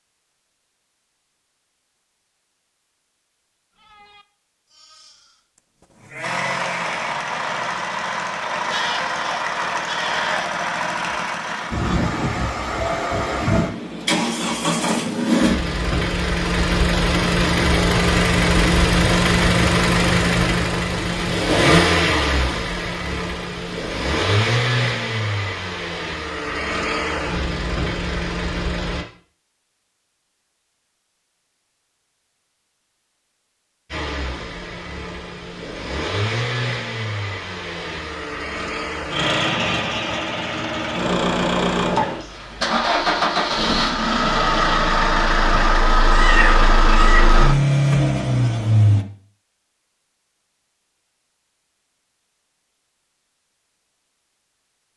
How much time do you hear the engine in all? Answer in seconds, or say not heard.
38 s.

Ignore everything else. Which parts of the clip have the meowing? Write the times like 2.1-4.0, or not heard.
46.1-47.3.